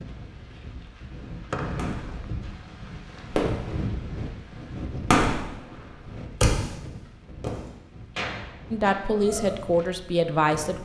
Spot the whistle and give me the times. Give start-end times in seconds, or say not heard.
1.5-2.2.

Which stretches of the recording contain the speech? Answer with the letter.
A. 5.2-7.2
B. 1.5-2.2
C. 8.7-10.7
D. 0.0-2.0
C.